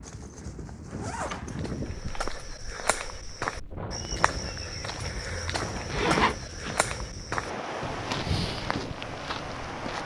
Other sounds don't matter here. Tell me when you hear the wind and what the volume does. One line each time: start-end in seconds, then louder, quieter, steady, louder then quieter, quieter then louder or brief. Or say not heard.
0.0-10.0 quieter then louder.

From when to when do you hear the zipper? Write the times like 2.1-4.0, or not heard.
0.0-1.7, 5.9-6.8.